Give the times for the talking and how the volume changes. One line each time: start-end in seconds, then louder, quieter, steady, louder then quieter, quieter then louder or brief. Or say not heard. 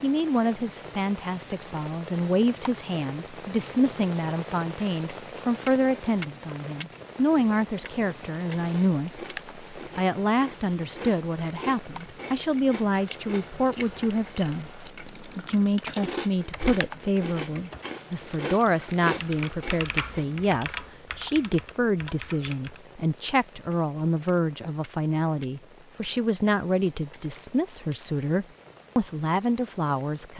0.0-30.3 steady.